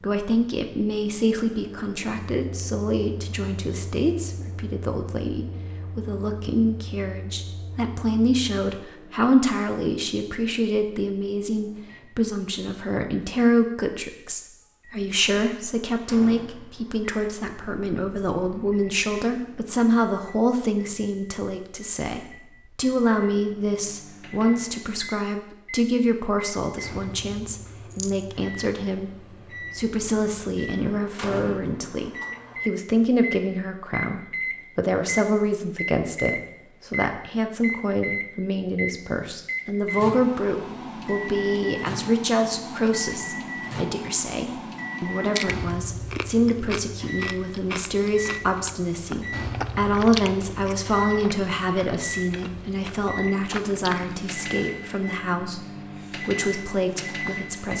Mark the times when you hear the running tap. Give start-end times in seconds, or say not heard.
not heard.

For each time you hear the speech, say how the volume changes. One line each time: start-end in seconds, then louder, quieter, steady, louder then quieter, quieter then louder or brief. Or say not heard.
0.0-57.7 steady.